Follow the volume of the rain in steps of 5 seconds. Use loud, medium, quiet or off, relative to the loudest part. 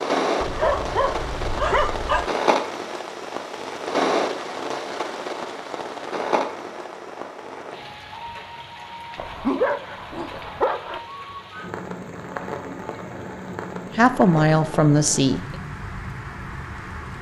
loud, medium, medium, medium.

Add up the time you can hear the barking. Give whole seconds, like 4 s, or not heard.
4 s.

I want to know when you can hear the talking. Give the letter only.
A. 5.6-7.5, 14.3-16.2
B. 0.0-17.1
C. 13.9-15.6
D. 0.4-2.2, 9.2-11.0
C.